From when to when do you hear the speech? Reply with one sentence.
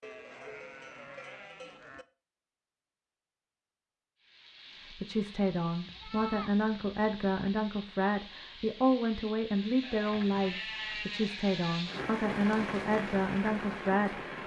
You can hear the speech from 4.9 to 14.3 s.